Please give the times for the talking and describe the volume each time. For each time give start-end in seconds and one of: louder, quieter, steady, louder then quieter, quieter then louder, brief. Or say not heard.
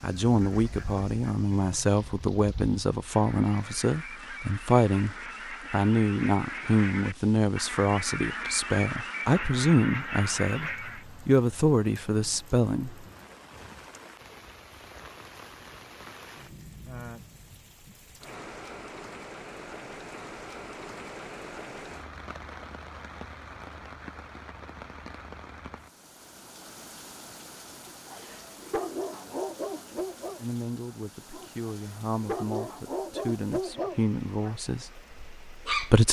0.0-12.9 steady
30.4-36.0 louder then quieter.